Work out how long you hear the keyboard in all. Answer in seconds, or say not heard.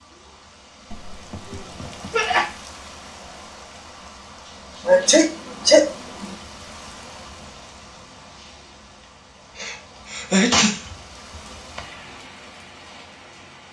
not heard.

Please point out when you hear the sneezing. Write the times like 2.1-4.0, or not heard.
0.9-2.5, 4.8-6.3, 9.6-10.9.